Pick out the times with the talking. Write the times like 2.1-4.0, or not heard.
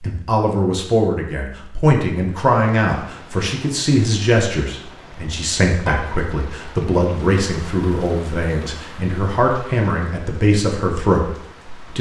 0.0-11.9.